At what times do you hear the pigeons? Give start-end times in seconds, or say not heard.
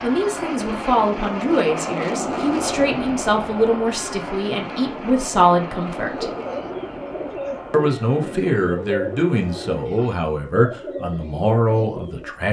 6.0-12.3.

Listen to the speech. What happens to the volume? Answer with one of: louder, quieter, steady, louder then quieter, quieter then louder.
steady.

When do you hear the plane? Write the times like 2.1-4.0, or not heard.
0.0-9.8.